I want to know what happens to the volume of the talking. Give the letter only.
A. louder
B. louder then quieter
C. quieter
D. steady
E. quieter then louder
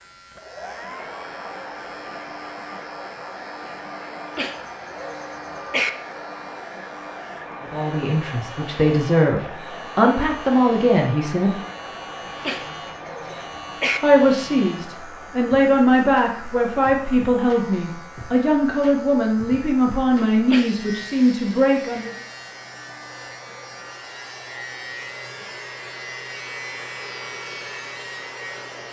D.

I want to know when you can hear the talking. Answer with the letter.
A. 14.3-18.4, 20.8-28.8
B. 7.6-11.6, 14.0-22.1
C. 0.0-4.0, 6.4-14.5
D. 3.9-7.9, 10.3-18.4
B.